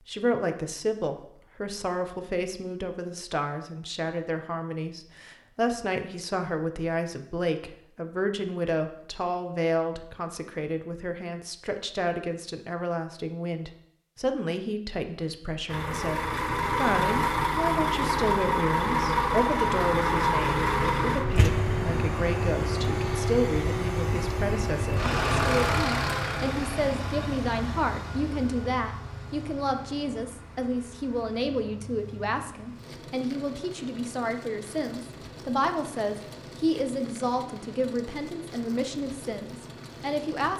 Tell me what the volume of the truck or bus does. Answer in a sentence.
The loudness of the truck or bus goes down.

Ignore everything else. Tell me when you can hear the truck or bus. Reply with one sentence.
You can hear the truck or bus from 15.7 to 40.5 s.